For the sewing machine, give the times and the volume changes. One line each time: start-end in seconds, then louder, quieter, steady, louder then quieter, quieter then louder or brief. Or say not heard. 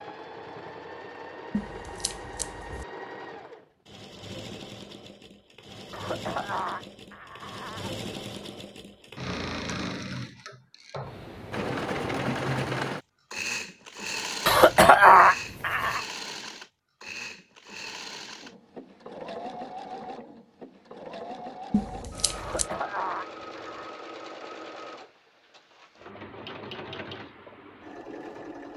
0.0-28.7 louder then quieter.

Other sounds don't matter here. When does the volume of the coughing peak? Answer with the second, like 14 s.
15 s.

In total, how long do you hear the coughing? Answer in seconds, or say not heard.
5 s.